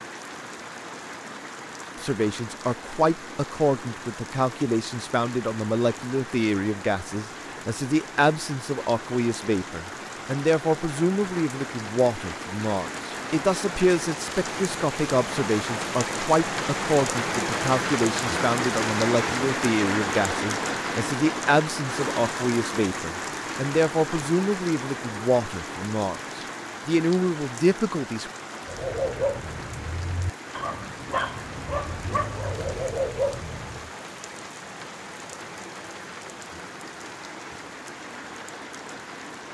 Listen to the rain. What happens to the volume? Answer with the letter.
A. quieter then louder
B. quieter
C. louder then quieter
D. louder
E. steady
C.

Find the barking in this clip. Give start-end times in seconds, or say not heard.
28.6-33.9.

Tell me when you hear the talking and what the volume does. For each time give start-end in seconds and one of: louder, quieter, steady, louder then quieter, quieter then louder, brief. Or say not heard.
2.0-28.3 steady.